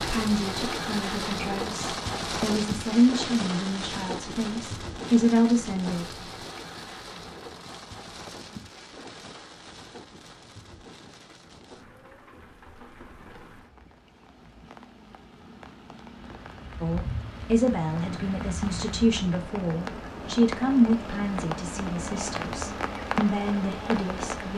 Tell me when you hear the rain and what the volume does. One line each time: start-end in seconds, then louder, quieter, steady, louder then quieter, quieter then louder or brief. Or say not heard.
0.0-24.5 quieter then louder.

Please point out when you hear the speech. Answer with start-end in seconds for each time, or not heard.
0.0-6.2, 16.8-24.5.